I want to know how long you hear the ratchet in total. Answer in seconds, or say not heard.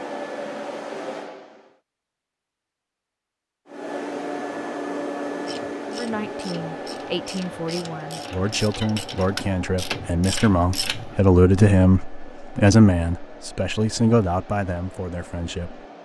6 s.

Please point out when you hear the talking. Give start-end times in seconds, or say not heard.
5.8-15.8.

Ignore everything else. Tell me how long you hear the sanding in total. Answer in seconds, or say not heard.
not heard.